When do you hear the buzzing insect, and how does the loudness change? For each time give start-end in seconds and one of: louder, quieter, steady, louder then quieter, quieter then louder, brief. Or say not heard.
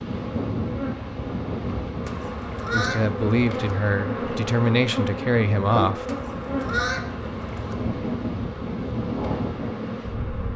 0.0-10.5 louder then quieter.